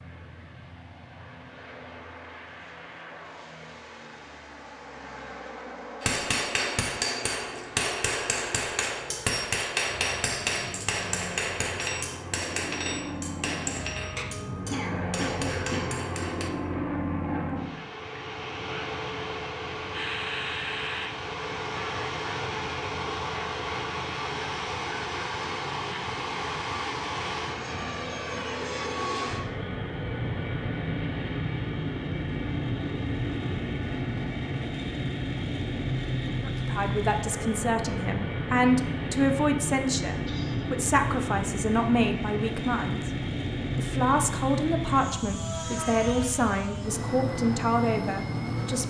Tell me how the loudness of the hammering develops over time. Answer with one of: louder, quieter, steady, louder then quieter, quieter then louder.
quieter.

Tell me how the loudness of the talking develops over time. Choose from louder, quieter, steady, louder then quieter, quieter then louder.
steady.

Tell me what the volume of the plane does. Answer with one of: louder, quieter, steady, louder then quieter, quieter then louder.
louder.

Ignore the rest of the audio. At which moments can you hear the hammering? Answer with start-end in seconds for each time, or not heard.
6.0-16.5.